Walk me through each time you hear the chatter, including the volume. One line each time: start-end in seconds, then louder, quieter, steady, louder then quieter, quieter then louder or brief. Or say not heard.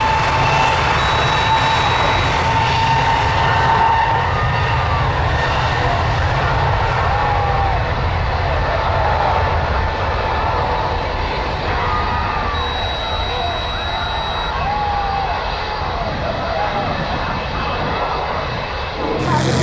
0.0-19.5 steady.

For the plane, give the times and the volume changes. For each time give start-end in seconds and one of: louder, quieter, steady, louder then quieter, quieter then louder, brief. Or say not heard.
0.0-19.5 quieter.